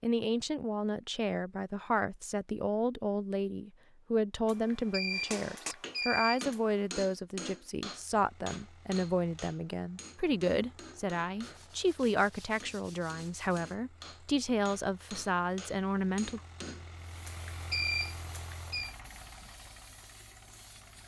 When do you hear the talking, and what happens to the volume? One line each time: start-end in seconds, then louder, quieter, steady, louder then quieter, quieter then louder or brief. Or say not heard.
0.0-16.4 steady.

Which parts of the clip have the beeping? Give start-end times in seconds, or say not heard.
4.5-6.8, 17.2-18.9.